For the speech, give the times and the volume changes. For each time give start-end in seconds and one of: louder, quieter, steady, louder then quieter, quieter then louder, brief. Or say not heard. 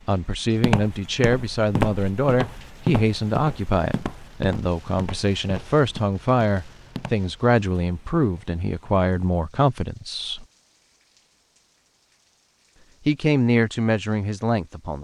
0.1-10.4 steady
13.1-14.9 brief.